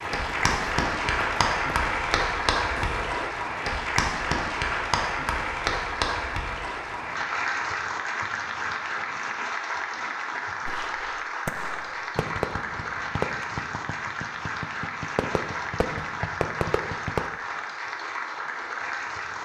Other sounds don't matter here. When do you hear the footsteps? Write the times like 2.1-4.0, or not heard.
not heard.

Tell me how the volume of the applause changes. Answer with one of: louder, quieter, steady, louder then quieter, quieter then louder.
quieter.